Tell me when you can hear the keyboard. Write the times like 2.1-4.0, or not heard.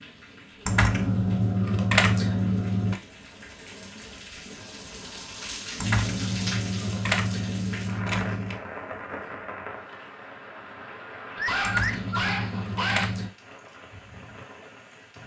0.7-3.0, 5.8-8.6, 11.6-13.3.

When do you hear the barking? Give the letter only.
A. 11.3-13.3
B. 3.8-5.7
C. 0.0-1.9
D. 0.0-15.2
A.